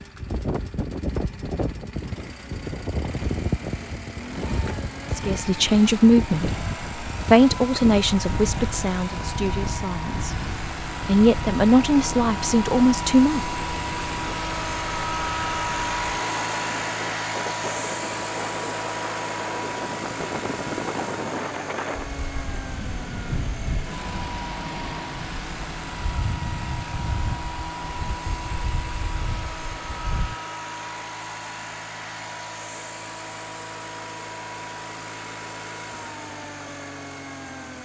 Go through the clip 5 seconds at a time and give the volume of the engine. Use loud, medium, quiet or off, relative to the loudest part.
quiet, medium, loud, loud, medium, medium, medium, medium.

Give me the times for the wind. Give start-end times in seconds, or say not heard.
0.0-30.4.